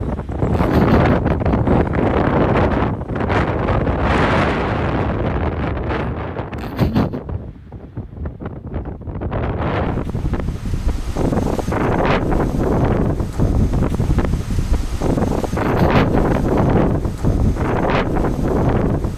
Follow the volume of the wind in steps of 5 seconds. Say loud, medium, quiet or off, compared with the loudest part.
loud, medium, loud, loud.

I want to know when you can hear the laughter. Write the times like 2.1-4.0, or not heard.
0.5-1.9, 6.5-7.2, 15.6-16.9.